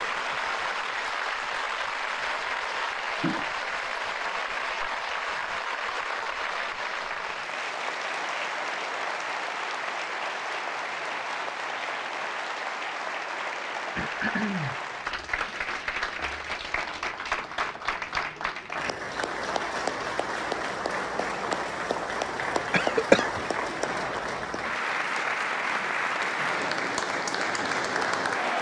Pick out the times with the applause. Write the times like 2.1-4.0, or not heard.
0.0-28.5.